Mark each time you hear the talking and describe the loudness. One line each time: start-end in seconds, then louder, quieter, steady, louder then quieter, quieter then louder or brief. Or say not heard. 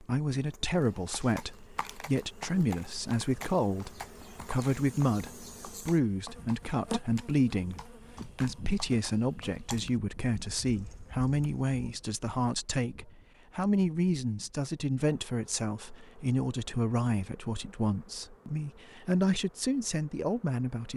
0.0-20.9 steady.